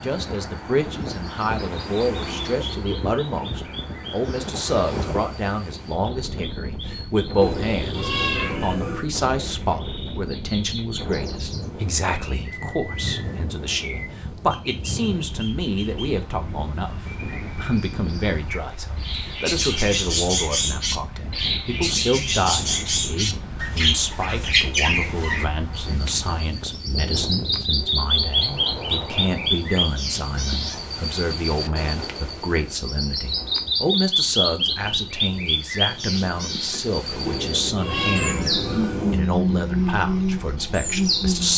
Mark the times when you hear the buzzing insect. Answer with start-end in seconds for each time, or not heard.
not heard.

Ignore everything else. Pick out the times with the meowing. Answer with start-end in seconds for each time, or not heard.
7.4-9.1, 37.2-39.2.